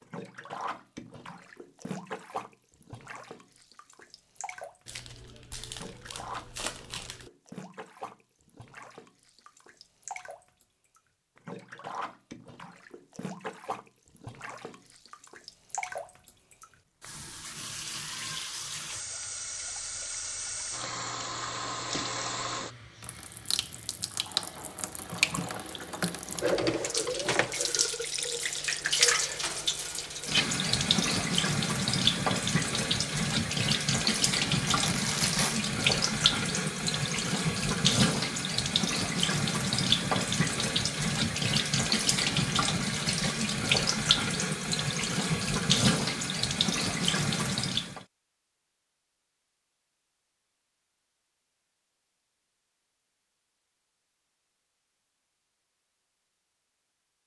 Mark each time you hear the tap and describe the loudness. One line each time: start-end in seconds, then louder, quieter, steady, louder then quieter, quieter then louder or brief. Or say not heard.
0.0-48.0 louder.